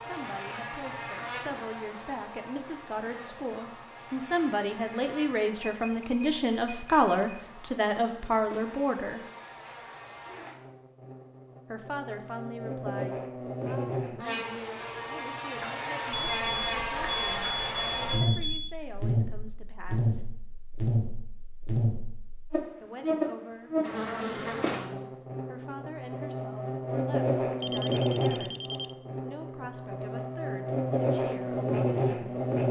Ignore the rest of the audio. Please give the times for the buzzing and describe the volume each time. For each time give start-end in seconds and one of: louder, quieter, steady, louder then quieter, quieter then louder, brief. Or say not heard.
0.0-32.6 louder.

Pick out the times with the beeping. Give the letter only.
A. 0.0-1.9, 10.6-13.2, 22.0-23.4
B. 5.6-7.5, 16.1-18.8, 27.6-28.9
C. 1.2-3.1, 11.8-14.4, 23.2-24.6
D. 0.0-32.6
B.